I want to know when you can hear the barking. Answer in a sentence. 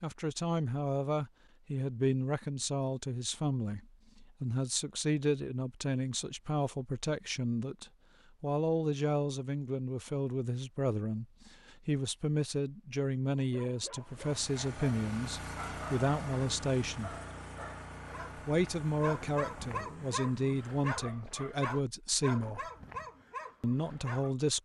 You can hear the barking from 13.3 to 24.4 s.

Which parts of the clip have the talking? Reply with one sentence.
The talking can be heard from 0.0 to 17.1 s, from 18.4 to 22.7 s and from 23.6 to 24.6 s.